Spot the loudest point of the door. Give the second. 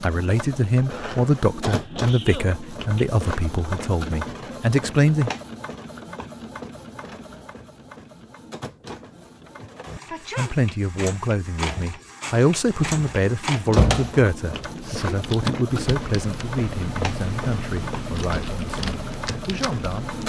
14 s.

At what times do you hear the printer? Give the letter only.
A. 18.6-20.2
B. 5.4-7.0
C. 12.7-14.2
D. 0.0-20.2
D.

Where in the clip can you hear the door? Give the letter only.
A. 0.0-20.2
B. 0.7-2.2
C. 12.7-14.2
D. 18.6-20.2
C.